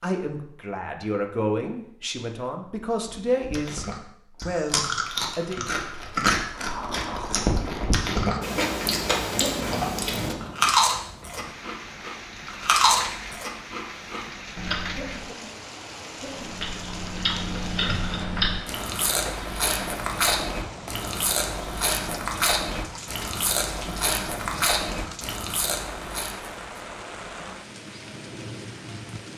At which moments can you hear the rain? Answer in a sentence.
The rain can be heard from 6.5 to 29.3 s.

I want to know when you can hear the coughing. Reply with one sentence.
The coughing can be heard from 9.2 to 9.7 s and from 14.8 to 16.8 s.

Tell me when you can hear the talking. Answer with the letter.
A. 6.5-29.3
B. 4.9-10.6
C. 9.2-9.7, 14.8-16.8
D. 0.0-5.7
D.